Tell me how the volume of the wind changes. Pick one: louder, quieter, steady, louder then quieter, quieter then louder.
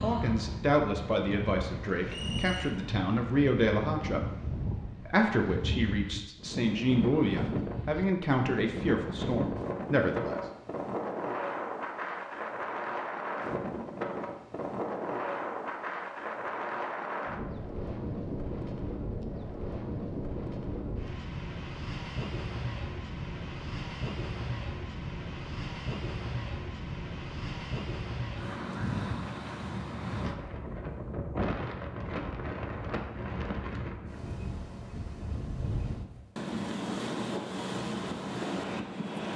steady.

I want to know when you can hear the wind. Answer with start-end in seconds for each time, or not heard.
0.0-39.3.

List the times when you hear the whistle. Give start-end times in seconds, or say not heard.
2.0-2.8.